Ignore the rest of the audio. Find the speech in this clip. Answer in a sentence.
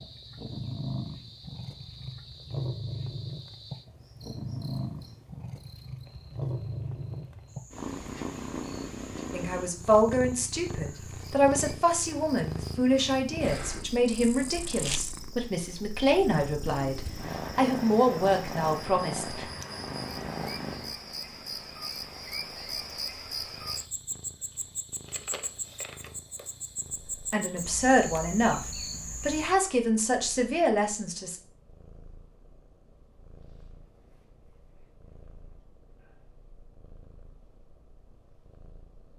The speech can be heard from 9.3 to 19.5 s, from 27.3 to 28.6 s and from 29.2 to 31.4 s.